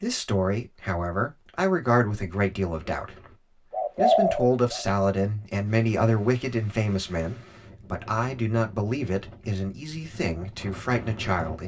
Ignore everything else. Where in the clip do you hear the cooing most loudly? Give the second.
4 s.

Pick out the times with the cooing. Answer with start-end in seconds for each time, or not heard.
2.3-4.8.